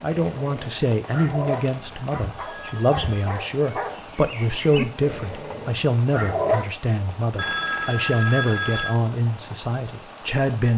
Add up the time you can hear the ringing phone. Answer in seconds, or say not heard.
3 s.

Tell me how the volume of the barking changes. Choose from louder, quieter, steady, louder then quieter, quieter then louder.
quieter then louder.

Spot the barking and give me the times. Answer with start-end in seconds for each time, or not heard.
0.1-6.8.